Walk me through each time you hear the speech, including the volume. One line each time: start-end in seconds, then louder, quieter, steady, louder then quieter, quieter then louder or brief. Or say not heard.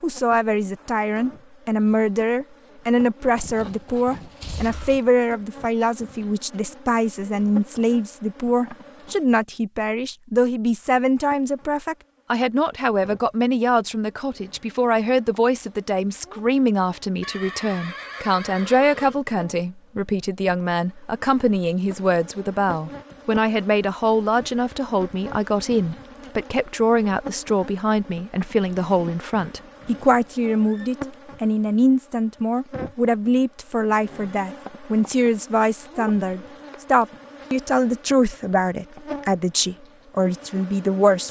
0.0-41.2 steady.